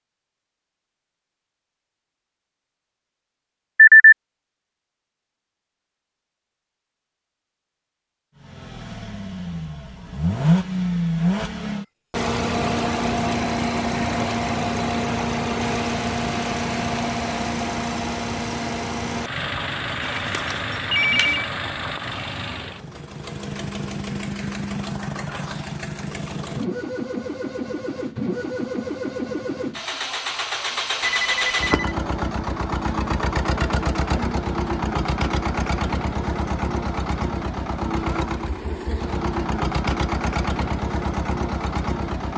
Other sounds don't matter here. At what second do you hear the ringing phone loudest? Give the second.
4 s.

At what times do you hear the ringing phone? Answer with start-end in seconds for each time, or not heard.
3.8-4.2, 20.1-21.4, 31.0-31.9.